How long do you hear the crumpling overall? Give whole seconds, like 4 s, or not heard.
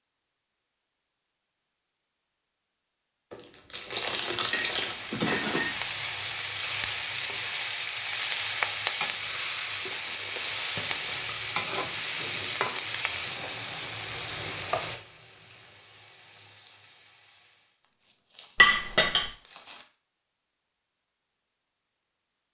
5 s.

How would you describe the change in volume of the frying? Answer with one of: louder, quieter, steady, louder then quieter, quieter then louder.
quieter.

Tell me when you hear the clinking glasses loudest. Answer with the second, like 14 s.
19 s.